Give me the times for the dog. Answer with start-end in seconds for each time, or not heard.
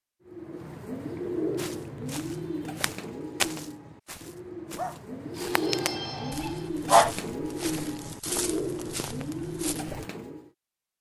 4.8-7.1.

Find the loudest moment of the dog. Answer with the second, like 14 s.
7 s.